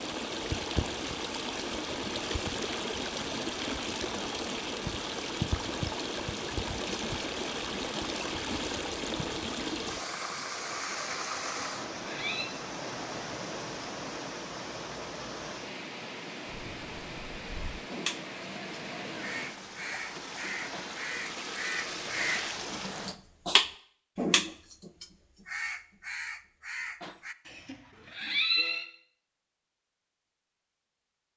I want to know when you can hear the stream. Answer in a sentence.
The stream can be heard from 0.0 to 23.2 s.